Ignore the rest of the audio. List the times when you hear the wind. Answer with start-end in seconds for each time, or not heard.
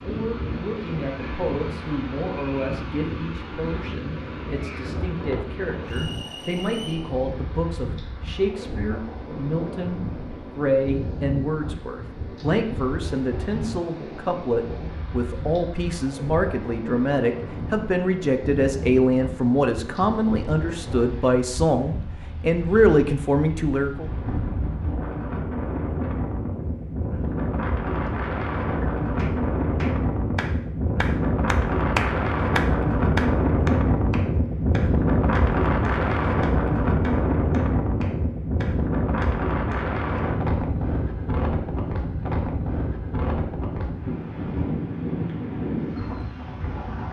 0.0-47.0.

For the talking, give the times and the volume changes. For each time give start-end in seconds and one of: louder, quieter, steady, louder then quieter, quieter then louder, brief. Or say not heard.
0.0-24.1 louder.